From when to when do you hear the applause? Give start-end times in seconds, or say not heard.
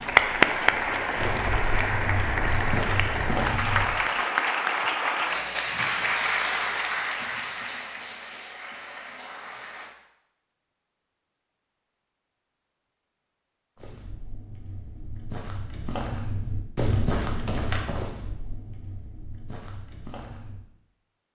0.0-9.9.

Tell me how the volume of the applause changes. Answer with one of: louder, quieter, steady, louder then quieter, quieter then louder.
quieter.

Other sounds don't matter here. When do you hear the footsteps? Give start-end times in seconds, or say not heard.
0.0-4.0, 13.8-20.6.